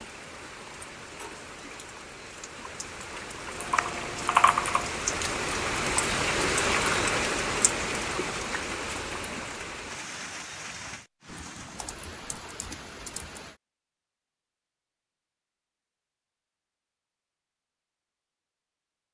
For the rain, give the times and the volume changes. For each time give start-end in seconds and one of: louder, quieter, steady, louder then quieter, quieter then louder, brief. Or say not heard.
0.0-13.6 louder then quieter.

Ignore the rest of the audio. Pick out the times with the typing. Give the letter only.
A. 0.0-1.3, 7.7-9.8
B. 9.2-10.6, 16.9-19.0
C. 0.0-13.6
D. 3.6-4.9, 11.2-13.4
D.